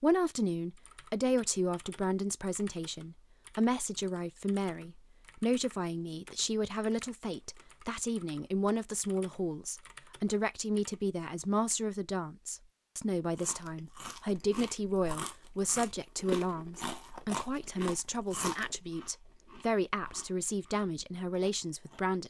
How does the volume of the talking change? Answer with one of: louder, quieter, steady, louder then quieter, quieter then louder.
steady.